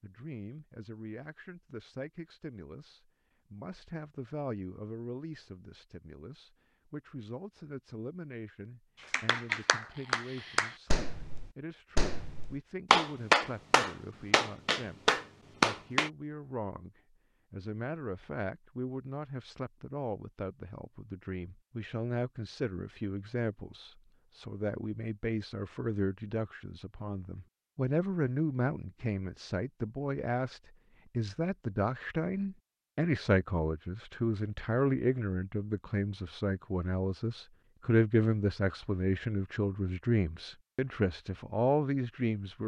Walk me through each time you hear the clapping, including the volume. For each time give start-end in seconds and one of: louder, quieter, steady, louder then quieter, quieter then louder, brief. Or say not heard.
9.0-16.1 quieter then louder.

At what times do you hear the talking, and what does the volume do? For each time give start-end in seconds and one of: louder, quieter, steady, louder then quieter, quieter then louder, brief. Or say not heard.
0.0-42.6 louder.